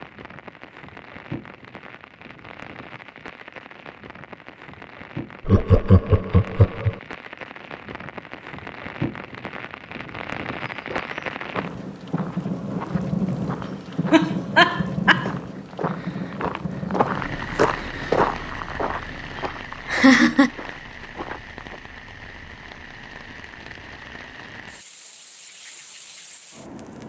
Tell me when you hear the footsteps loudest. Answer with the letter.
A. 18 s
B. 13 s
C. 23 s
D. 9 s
A.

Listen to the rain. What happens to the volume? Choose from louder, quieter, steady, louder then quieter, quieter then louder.
louder then quieter.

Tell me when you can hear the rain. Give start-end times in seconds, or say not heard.
0.0-27.0.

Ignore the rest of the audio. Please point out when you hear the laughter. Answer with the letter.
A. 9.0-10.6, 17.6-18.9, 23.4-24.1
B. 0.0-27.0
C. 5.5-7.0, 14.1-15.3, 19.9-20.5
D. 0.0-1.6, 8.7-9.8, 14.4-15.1
C.